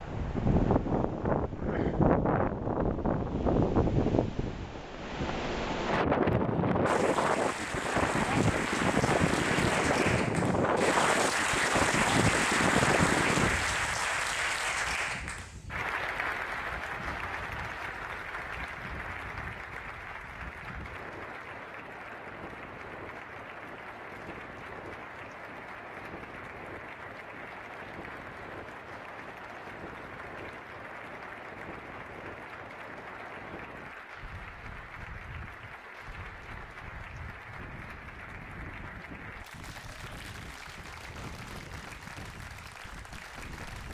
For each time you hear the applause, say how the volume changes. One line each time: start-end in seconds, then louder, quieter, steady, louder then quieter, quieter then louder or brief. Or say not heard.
6.8-43.8 quieter.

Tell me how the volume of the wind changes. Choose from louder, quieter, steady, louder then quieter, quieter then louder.
quieter.